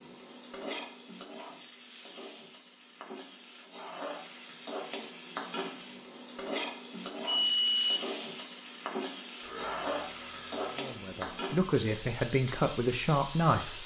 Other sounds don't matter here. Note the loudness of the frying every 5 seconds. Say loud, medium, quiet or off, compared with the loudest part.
medium, loud, loud.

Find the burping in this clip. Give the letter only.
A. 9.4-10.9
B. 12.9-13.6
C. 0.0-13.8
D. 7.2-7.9
A.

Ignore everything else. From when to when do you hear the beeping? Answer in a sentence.
You can hear the beeping from 7.2 to 7.9 s.